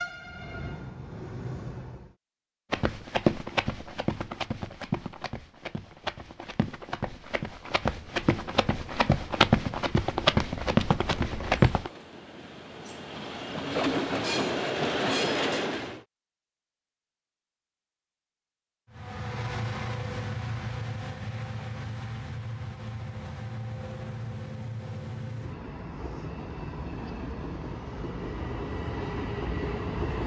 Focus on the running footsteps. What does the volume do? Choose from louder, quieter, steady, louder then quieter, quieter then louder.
quieter then louder.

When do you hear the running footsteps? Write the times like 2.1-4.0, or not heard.
2.7-11.9.